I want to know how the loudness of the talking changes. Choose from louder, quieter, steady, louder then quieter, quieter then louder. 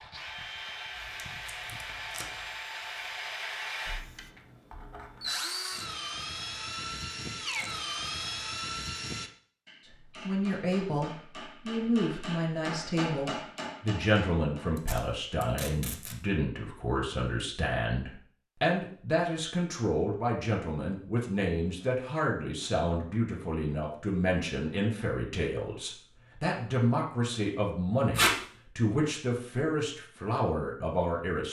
steady.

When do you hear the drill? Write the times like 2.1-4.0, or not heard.
0.0-9.3.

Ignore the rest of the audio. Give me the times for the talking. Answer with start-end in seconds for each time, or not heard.
9.9-31.4.